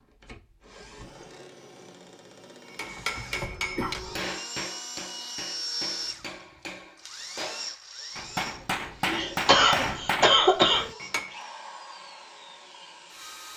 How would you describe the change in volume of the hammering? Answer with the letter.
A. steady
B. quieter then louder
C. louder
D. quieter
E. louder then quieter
B.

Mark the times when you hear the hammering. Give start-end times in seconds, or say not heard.
2.8-11.3.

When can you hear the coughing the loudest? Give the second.
10 s.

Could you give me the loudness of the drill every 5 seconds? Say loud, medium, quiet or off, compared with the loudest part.
medium, loud, medium.